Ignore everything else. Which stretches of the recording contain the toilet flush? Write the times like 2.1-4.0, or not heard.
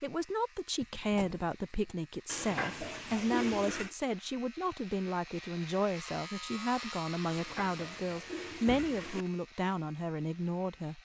2.2-4.0, 7.2-9.3.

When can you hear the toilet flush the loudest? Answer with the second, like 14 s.
3 s.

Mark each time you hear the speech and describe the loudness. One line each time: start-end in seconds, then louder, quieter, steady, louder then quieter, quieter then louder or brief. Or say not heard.
0.0-11.0 steady.